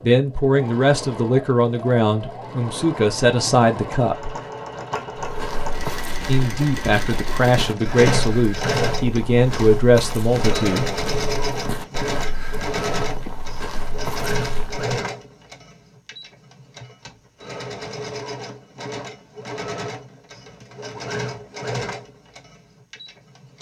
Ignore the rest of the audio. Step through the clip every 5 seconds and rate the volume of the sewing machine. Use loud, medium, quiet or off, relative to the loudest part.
medium, loud, loud, medium, medium.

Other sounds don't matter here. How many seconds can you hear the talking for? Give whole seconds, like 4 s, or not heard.
9 s.